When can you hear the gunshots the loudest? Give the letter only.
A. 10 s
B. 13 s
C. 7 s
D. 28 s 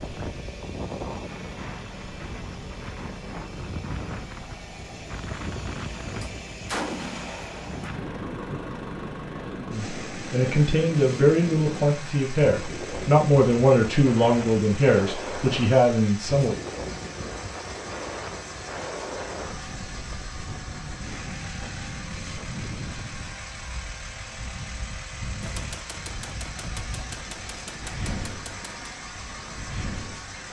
C.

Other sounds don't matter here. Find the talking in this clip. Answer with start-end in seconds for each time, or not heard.
9.7-16.6.